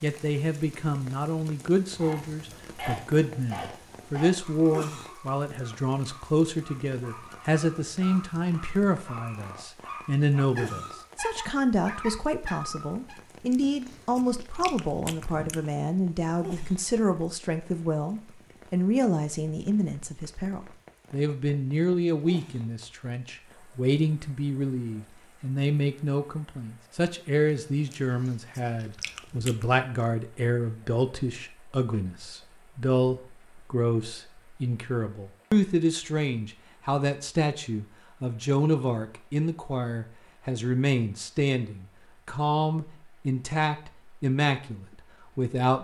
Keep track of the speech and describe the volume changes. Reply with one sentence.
The volume of the speech stays about the same.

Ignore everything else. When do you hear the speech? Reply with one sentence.
You can hear the speech from 0.0 to 45.7 s.